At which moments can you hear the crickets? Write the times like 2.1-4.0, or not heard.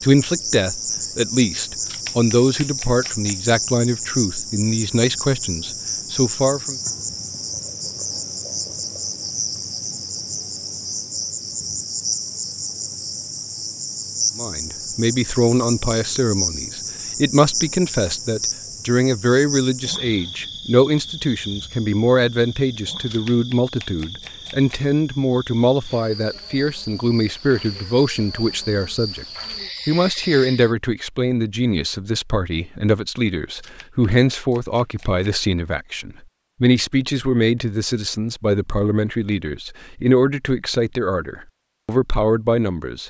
0.0-30.8.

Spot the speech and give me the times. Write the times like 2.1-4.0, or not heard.
0.0-6.8, 14.3-29.2, 29.9-43.0.